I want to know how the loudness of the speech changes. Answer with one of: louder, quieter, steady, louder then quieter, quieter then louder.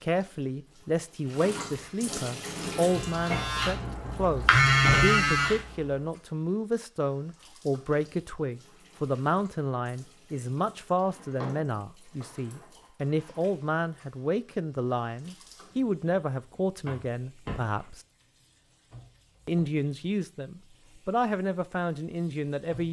steady.